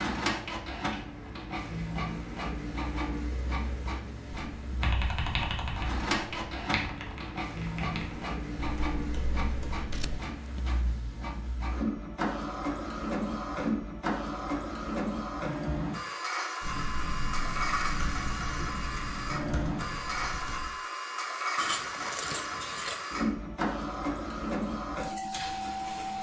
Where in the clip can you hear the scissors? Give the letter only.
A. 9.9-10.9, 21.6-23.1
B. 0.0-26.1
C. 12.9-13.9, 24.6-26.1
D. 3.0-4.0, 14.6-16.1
A.